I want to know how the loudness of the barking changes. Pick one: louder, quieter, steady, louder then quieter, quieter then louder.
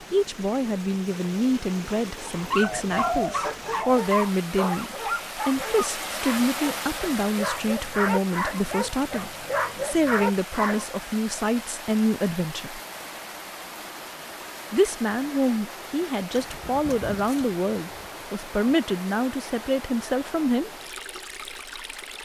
quieter then louder.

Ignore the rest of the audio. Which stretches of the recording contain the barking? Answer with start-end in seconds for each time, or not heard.
2.3-10.8.